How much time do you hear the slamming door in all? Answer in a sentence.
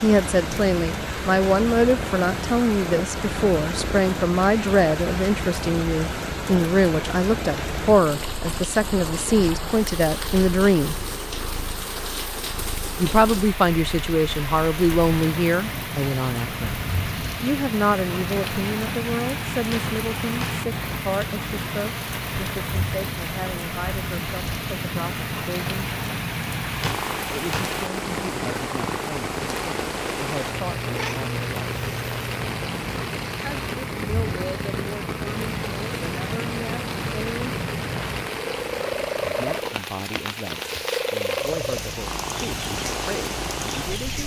You can hear the slamming door for 2 seconds altogether.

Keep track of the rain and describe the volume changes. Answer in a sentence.
The volume of the rain stays about the same.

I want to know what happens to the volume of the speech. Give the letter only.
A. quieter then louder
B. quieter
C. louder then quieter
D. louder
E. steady
B.